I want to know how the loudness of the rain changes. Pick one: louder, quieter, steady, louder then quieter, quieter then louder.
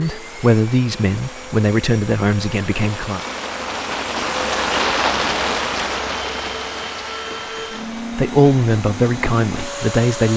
louder then quieter.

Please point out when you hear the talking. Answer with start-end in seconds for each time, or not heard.
0.0-3.2, 8.1-10.3.